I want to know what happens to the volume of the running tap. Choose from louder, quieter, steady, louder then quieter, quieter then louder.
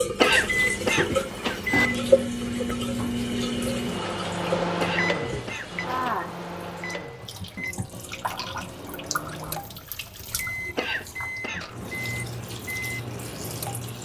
quieter.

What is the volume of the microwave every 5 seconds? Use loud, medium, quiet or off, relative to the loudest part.
loud, medium, medium.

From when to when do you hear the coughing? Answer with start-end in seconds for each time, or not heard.
0.1-1.9, 4.8-6.2, 10.8-11.8.